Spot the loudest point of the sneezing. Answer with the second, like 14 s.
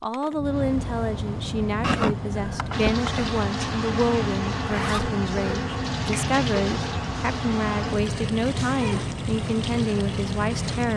2 s.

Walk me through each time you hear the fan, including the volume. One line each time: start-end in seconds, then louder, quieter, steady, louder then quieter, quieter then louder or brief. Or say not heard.
0.0-10.9 steady.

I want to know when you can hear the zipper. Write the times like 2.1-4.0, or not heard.
4.6-5.1.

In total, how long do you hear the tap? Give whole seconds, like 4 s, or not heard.
8 s.